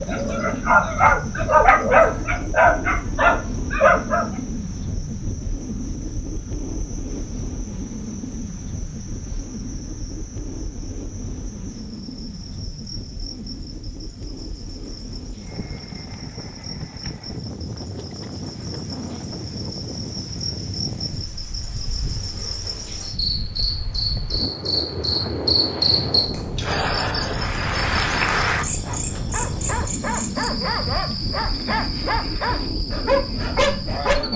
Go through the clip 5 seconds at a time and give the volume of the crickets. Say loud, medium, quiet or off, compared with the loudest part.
quiet, quiet, quiet, quiet, medium, loud, medium.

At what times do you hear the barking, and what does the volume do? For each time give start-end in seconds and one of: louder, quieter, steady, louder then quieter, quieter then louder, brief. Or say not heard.
0.0-4.2 steady
28.9-34.3 louder.